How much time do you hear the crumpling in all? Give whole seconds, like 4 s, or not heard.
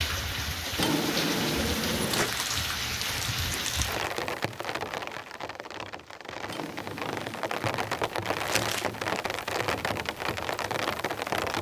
2 s.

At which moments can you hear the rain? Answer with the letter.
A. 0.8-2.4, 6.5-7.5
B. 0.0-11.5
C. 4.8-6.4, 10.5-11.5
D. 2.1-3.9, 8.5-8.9
B.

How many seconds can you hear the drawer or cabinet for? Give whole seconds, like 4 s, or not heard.
3 s.